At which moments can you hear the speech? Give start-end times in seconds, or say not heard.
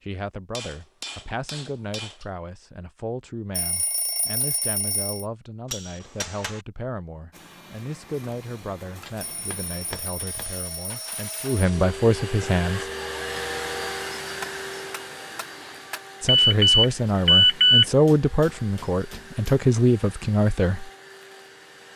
0.0-12.8, 16.2-20.9.